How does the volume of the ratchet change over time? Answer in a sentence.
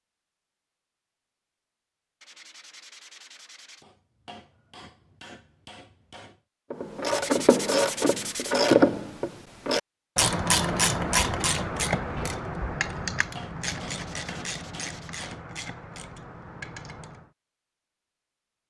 The volume of the ratchet goes down.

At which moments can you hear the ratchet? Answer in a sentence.
You can hear the ratchet from 6.7 to 17.3 s.